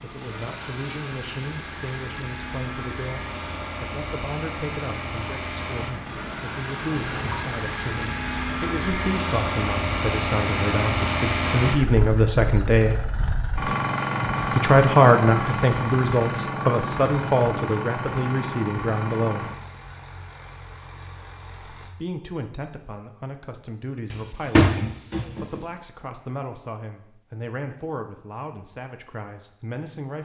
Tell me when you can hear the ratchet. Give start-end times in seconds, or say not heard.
not heard.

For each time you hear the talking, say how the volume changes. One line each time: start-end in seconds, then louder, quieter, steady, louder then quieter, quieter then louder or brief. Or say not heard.
0.0-13.1 louder
14.6-19.5 quieter
21.8-30.2 steady.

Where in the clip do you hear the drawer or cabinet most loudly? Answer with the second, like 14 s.
25 s.